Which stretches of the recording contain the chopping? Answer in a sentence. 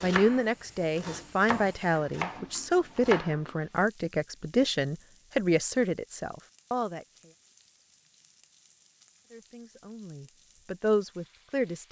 You can hear the chopping from 0.0 to 3.4 s.